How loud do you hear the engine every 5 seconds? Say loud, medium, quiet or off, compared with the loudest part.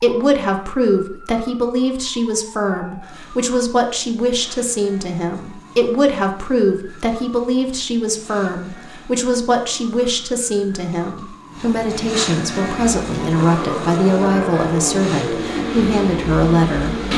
off, off, loud, loud.